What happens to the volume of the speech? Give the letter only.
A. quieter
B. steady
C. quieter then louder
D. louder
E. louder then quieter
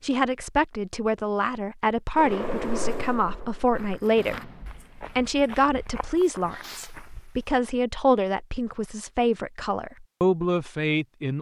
B.